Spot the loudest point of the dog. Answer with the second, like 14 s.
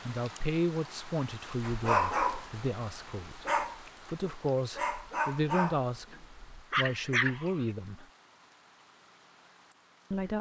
2 s.